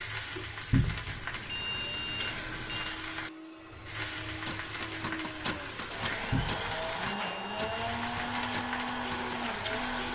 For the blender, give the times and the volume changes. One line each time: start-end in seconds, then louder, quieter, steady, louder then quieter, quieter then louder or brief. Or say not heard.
0.2-10.0 louder.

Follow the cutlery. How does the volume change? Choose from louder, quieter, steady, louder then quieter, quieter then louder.
quieter.